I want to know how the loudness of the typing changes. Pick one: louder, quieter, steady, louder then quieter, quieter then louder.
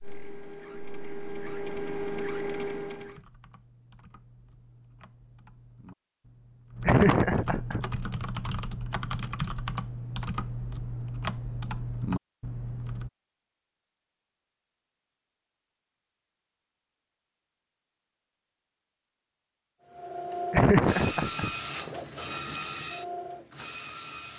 louder.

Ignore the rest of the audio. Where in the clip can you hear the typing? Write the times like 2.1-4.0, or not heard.
3.0-13.1.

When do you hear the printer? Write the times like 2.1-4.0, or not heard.
0.0-3.2, 19.9-24.3.